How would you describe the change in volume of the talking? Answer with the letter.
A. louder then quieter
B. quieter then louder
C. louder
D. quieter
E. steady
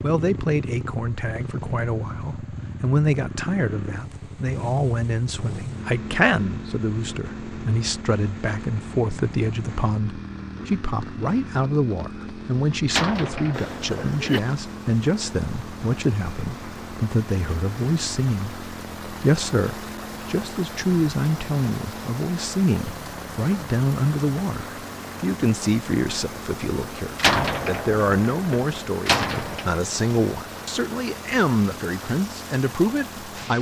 E.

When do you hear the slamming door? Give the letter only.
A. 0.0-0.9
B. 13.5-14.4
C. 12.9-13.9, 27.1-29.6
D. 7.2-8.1
C.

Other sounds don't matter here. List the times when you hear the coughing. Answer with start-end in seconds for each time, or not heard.
13.5-14.4.